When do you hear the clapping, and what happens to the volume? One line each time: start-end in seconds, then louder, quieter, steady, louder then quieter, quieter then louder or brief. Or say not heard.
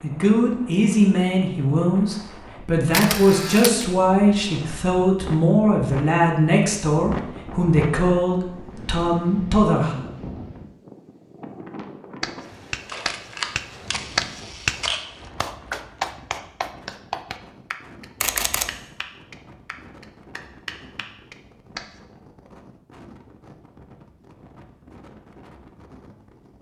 12.2-22.0 quieter.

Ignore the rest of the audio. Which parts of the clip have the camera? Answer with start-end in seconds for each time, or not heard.
2.9-3.9, 12.8-15.3, 18.2-18.8.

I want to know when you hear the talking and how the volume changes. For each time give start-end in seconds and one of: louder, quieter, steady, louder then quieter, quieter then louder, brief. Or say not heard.
0.0-10.1 steady.